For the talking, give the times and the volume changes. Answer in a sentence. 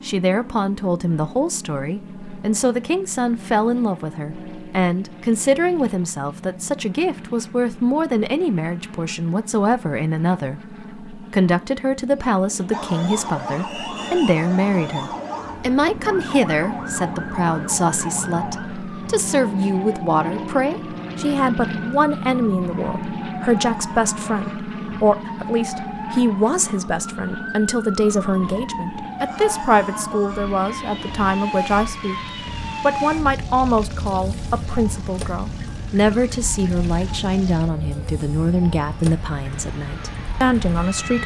The talking can be heard from 0.0 to 32.2 s, at a steady volume; and from 32.8 to 41.2 s, at a steady volume.